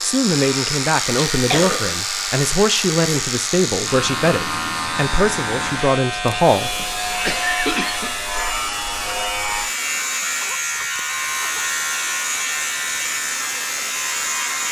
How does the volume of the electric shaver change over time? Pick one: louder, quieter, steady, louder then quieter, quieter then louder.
steady.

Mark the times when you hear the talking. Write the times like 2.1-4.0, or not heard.
0.0-6.8.